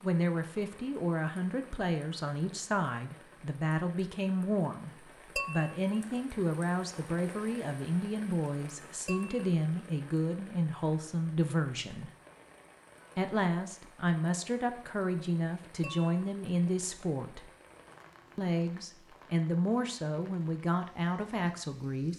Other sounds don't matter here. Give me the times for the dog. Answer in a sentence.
You can't hear the dog here.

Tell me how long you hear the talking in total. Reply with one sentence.
You can hear the talking for 20 seconds altogether.